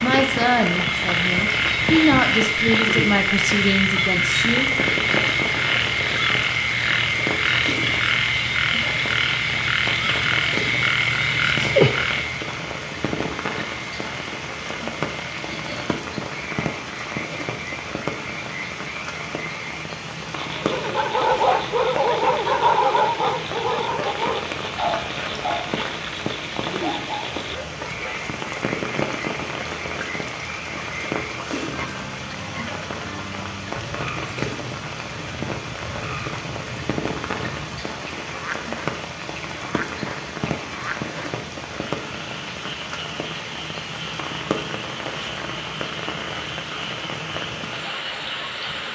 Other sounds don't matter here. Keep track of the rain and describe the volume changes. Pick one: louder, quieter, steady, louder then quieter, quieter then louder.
steady.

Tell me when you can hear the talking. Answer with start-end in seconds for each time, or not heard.
0.0-4.7.